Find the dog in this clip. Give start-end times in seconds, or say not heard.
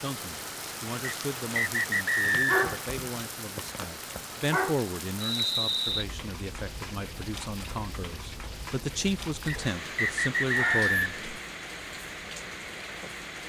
2.3-4.8, 10.6-11.4.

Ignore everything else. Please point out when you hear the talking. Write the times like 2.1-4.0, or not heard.
0.0-11.2.